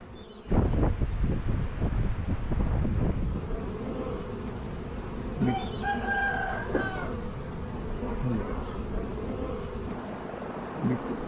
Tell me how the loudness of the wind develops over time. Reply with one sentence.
The volume of the wind goes down.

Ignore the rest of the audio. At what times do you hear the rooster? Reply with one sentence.
You can hear the rooster from 5.4 to 7.2 s.